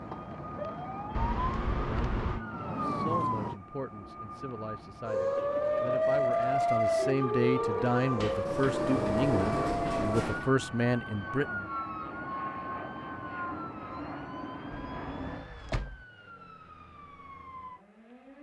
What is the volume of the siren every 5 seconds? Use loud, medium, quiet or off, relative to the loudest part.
medium, loud, quiet, quiet.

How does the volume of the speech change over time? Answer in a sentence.
The loudness of the speech goes up.